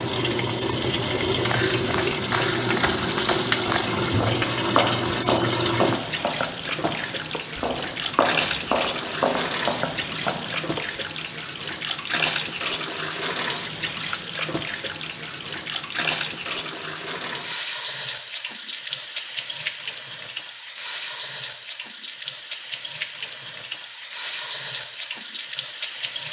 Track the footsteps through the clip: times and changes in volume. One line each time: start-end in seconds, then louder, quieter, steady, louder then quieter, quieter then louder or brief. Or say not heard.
1.4-11.0 steady.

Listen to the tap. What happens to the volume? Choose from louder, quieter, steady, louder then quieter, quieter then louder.
quieter.